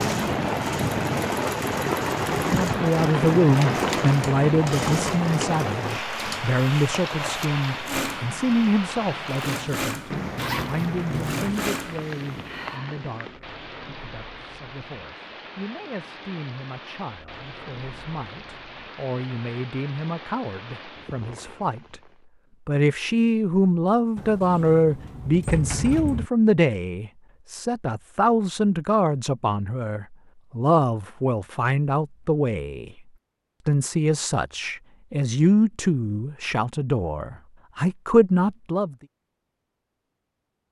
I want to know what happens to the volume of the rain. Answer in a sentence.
The volume of the rain goes down.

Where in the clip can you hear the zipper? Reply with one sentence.
You can hear the zipper from 10.3 to 11.7 s.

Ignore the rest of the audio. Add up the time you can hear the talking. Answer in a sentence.
The talking can be heard for 35 seconds in total.